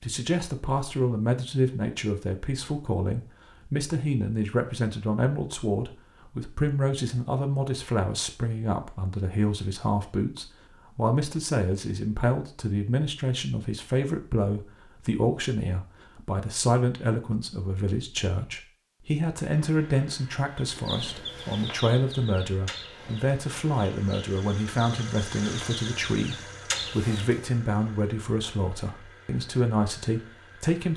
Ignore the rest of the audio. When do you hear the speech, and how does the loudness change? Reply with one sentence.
The speech can be heard from 0.0 to 30.9 s, at a steady volume.